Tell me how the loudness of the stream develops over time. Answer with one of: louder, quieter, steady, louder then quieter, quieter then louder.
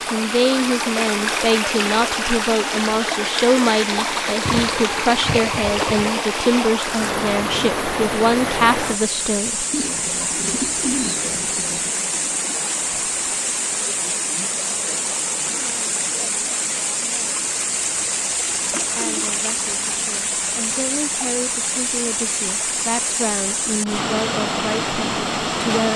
steady.